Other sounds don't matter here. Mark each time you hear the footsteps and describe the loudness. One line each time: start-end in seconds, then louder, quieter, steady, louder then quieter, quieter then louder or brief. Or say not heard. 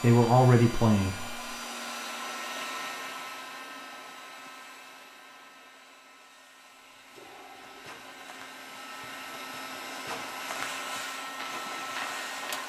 7.5-12.6 louder.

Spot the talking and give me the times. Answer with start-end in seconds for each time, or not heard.
0.0-1.6.